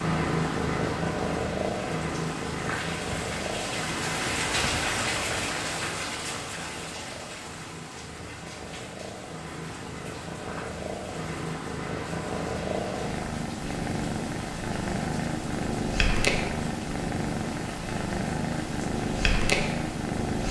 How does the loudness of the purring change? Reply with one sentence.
The volume of the purring goes down, then up.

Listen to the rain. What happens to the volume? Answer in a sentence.
The loudness of the rain goes down.